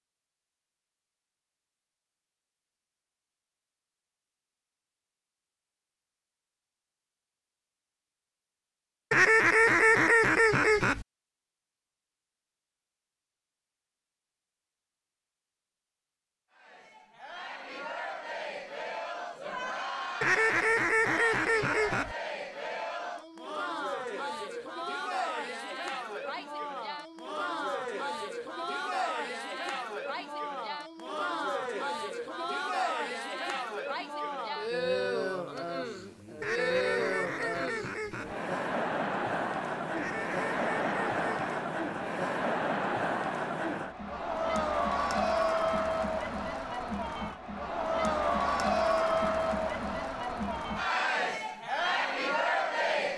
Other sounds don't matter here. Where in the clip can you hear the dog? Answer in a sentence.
The dog can't be heard in this clip.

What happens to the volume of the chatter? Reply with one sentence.
The volume of the chatter goes up.